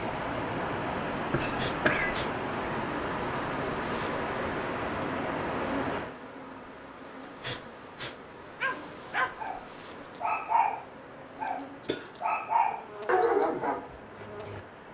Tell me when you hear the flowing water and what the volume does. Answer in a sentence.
You can hear the flowing water from 0.0 to 14.8 s, getting quieter.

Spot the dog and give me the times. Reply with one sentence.
The dog can be heard from 8.6 to 14.6 s.